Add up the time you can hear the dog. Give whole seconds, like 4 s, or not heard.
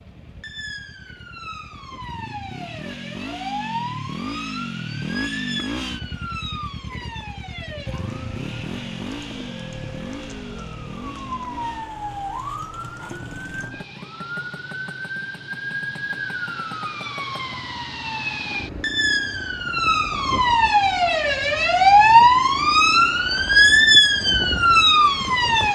not heard.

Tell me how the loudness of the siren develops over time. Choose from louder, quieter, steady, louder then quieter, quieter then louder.
louder.